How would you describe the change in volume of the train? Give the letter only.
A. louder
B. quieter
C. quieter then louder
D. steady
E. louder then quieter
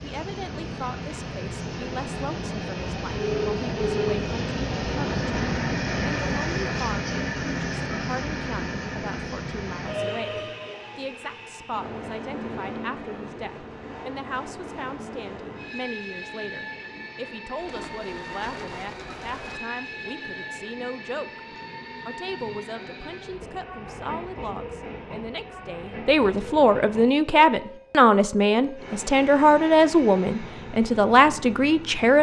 B.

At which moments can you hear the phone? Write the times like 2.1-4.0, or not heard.
3.1-4.2.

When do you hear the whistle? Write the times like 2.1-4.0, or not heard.
not heard.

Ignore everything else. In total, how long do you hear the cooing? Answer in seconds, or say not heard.
2 s.